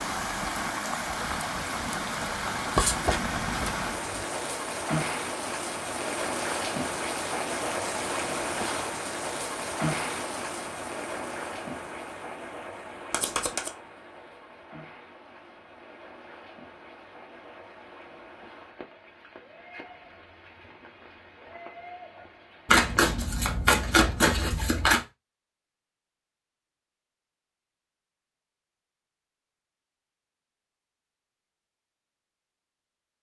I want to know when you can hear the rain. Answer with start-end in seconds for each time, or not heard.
0.0-23.2.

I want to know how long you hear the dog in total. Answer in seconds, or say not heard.
not heard.